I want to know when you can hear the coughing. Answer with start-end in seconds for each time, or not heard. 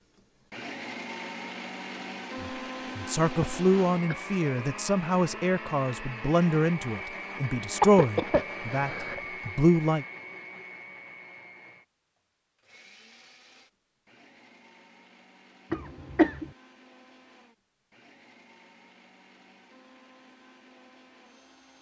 3.4-4.2, 7.8-9.2, 15.7-16.5.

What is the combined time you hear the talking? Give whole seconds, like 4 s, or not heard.
8 s.